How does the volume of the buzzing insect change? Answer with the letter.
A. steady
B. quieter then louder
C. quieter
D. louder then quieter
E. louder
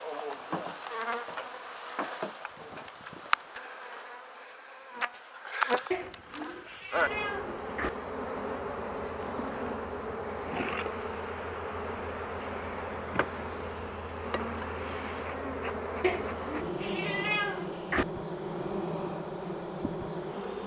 A.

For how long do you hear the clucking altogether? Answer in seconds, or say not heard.
not heard.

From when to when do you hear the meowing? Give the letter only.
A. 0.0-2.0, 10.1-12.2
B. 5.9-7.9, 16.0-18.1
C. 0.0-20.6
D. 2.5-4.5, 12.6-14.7
B.